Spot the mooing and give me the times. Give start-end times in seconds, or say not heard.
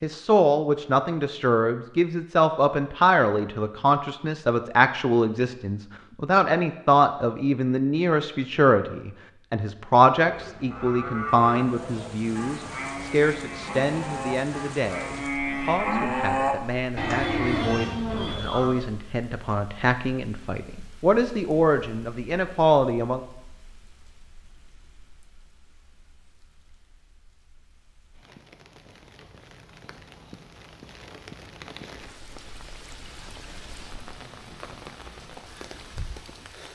10.2-18.9.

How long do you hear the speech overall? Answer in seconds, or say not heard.
23 s.